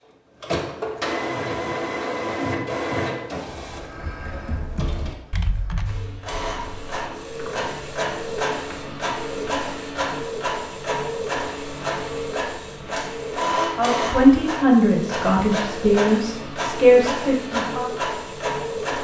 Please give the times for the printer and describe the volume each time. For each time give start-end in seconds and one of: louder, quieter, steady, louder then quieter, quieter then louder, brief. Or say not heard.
0.0-18.9 quieter then louder.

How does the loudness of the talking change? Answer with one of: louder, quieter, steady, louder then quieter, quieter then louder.
quieter then louder.